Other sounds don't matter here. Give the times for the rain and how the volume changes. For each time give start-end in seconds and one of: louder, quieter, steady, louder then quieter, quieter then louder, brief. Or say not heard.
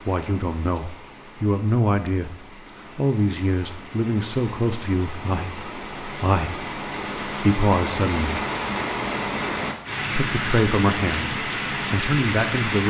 0.0-12.8 louder.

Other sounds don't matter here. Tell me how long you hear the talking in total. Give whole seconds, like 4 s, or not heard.
10 s.